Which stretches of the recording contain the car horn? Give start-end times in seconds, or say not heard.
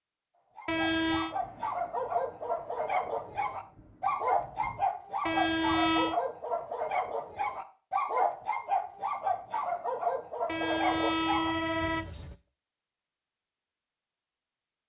0.7-1.4, 5.2-6.2, 10.4-12.3.